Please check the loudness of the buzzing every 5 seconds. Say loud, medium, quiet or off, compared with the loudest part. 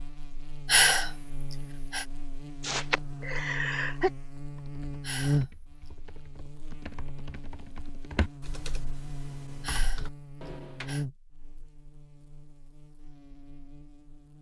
medium, loud, medium.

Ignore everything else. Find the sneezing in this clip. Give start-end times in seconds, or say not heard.
2.6-4.1.